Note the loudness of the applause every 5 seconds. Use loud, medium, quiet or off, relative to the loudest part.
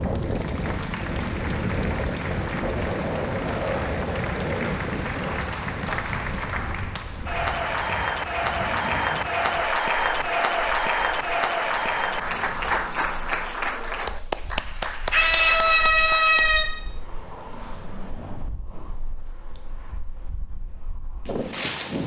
medium, loud, loud, medium, off.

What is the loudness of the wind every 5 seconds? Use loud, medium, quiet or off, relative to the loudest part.
loud, medium, quiet, quiet, medium.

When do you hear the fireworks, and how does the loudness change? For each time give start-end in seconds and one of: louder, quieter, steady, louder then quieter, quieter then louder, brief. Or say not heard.
not heard.